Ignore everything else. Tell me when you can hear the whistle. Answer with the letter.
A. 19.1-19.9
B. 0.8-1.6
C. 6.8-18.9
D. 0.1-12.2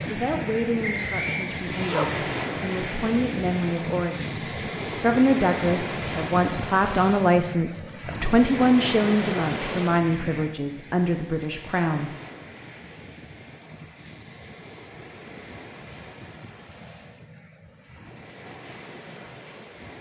B.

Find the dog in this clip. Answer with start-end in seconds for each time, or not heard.
1.4-2.2.